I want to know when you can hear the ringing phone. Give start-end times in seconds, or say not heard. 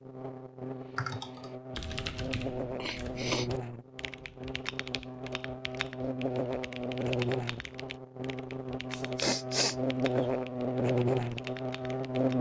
not heard.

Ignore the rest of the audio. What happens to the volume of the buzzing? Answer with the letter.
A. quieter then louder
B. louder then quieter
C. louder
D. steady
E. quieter
C.